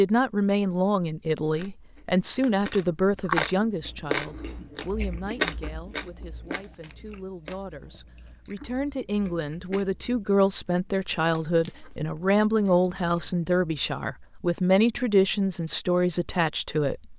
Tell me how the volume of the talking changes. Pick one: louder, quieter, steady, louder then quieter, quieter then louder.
quieter then louder.